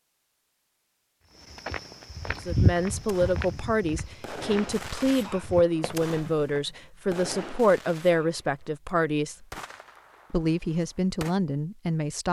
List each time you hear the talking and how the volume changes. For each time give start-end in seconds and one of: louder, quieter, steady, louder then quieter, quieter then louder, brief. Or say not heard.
2.3-9.3 steady
10.3-12.2 brief.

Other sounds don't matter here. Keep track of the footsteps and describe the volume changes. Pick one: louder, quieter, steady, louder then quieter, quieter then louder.
quieter.